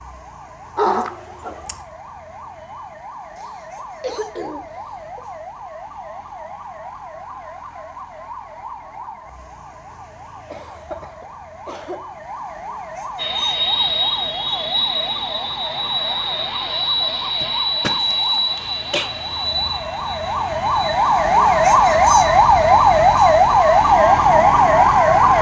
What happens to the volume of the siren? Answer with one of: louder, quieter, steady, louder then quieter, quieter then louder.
louder.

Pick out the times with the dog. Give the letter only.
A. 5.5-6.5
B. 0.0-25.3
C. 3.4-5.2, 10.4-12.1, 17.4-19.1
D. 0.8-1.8
D.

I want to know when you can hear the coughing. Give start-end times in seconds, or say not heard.
3.4-5.2, 10.4-12.1, 17.4-19.1.